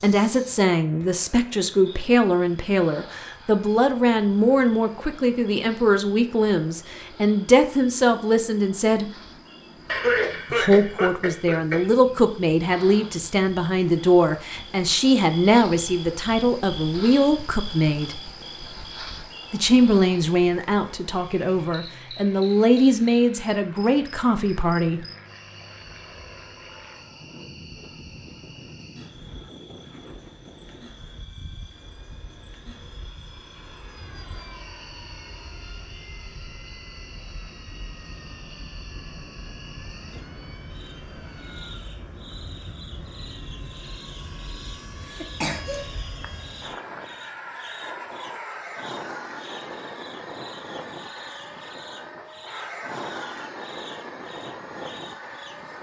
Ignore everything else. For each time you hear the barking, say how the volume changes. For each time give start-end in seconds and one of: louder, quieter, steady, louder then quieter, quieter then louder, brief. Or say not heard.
not heard.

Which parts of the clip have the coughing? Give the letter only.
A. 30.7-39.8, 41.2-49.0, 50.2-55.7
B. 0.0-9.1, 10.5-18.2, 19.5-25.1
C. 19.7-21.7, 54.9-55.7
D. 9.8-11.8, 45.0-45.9
D.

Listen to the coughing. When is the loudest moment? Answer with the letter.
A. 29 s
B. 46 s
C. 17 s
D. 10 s
D.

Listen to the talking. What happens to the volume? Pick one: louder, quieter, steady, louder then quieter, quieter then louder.
steady.